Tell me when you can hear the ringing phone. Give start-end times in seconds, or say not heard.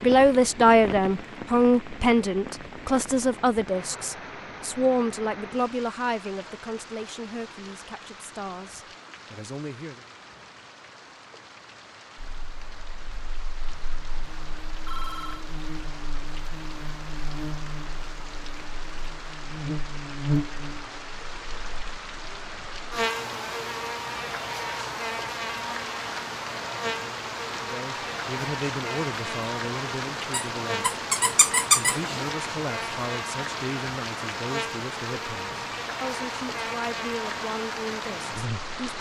14.7-15.4.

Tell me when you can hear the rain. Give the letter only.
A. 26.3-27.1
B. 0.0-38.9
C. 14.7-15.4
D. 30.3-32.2
B.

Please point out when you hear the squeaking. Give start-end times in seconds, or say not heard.
30.3-32.2.